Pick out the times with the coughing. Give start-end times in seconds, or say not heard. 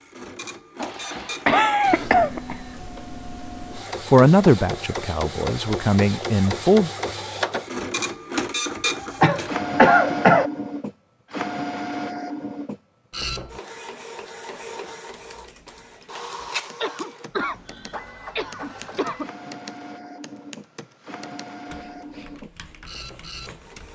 0.8-2.5, 9.2-10.5, 16.8-19.3.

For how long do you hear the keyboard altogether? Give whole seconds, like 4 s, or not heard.
9 s.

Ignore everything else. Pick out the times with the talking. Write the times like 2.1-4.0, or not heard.
4.1-6.9.